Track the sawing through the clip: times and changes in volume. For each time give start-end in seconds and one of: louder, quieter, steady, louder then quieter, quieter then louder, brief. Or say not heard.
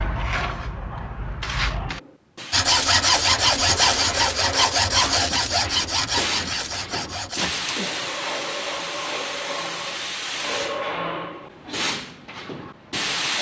2.5-8.0 quieter.